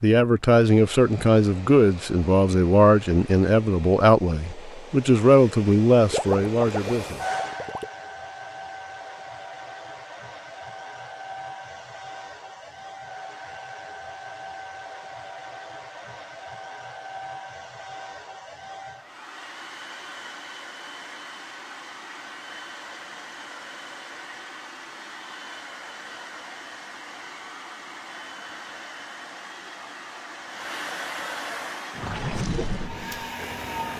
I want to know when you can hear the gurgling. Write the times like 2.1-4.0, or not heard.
6.1-7.9, 31.9-33.9.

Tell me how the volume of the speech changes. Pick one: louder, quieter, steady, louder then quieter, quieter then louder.
steady.